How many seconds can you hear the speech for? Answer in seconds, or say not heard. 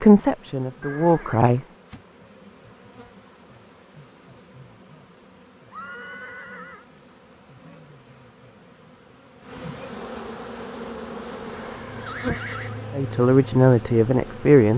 3 s.